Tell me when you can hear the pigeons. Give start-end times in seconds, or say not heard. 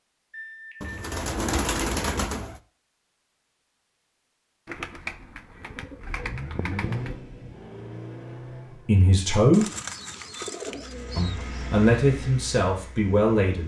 0.8-2.6, 4.7-7.2, 9.5-11.7.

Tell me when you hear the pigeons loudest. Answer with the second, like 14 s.
2 s.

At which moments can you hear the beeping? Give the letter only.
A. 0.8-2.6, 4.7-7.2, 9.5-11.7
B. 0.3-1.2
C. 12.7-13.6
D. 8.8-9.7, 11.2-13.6
B.